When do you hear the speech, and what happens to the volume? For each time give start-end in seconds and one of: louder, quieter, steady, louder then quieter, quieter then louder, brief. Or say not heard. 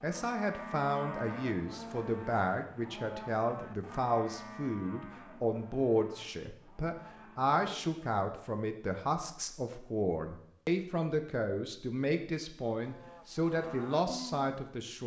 0.0-15.0 steady.